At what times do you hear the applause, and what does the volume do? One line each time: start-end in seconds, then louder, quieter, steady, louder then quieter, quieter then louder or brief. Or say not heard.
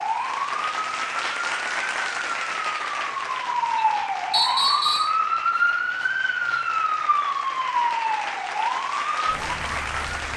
0.0-10.3 quieter then louder.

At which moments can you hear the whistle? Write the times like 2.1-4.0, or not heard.
4.3-5.2.